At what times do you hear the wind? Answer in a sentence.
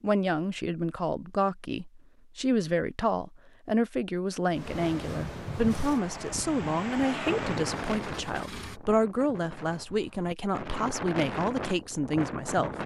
You can hear the wind from 4.5 to 12.8 s.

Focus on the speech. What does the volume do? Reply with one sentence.
The loudness of the speech stays about the same.